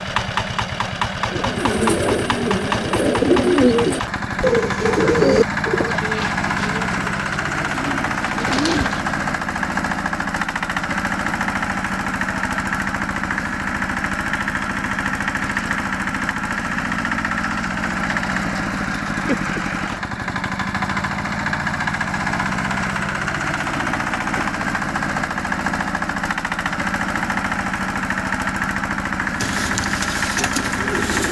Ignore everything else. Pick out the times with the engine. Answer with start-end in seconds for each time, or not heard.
0.0-31.2.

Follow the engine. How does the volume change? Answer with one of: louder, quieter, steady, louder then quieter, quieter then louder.
steady.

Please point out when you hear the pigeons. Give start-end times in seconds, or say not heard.
1.2-9.2, 29.4-31.2.